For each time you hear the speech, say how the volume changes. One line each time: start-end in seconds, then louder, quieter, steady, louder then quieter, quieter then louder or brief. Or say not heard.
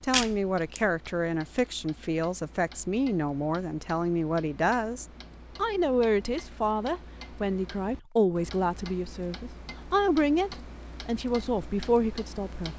0.0-12.7 steady.